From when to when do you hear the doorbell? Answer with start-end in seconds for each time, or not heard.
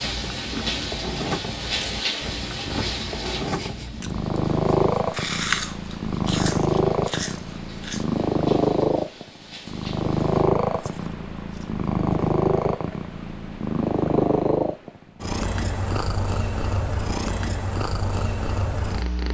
not heard.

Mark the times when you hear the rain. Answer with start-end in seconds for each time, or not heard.
0.0-10.4.